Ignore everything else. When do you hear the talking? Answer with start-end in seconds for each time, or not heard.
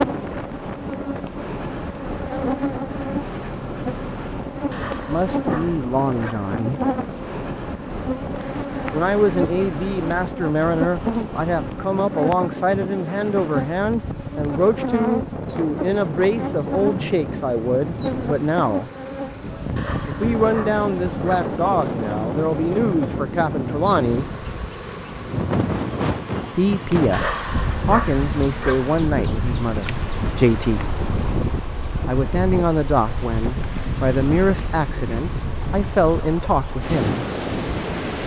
5.0-6.8, 8.9-18.9, 20.1-24.2, 26.6-30.9, 32.0-37.2.